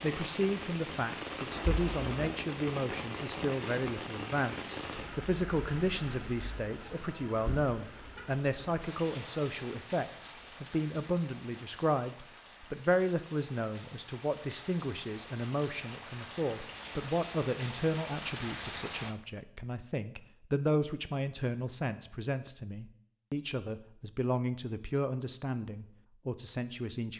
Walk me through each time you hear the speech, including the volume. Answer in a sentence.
The speech can be heard from 0.0 to 27.1 s, at a steady volume.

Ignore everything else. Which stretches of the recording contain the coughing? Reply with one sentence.
You can't hear the coughing here.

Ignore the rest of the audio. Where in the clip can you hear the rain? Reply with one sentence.
The rain can be heard from 0.0 to 19.1 s.